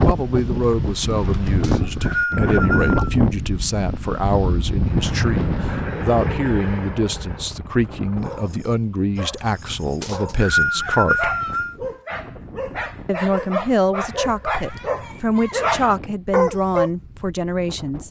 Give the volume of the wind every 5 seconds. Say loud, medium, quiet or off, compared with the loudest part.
loud, medium, quiet, quiet.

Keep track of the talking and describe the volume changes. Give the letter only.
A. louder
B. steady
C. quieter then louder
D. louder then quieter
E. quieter
B.